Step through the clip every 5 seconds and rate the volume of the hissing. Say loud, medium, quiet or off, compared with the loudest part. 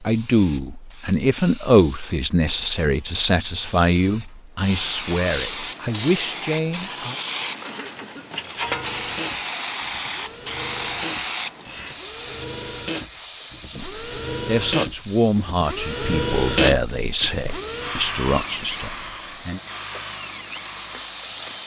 medium, loud, loud, medium, loud.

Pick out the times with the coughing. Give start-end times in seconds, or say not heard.
7.7-8.3.